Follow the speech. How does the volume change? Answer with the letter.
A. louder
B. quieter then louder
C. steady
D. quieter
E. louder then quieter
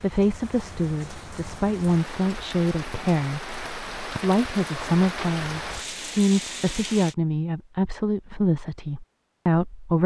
C.